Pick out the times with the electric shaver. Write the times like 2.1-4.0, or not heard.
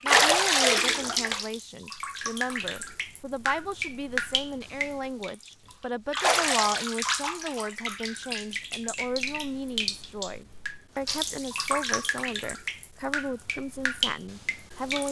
not heard.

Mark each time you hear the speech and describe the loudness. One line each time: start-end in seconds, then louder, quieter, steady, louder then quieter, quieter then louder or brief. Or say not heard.
0.0-15.0 steady.